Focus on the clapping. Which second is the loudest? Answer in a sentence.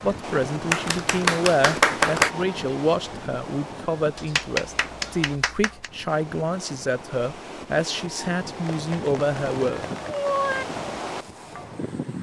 The volume of the clapping peaks at 2 seconds.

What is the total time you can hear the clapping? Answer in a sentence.
You can hear the clapping for 5 seconds altogether.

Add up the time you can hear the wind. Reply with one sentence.
You can hear the wind for 12 seconds altogether.